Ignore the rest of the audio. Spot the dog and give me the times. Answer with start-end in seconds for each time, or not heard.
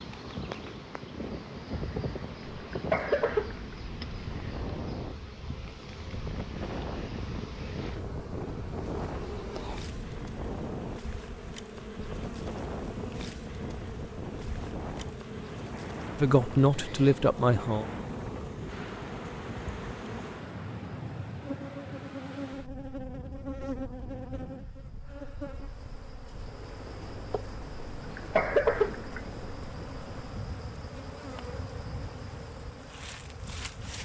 not heard.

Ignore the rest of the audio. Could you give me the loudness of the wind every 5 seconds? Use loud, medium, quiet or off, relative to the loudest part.
loud, loud, loud, loud, loud, medium, medium.